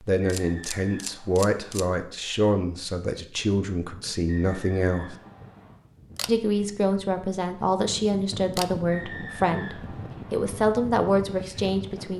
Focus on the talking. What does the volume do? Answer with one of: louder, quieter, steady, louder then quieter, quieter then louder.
steady.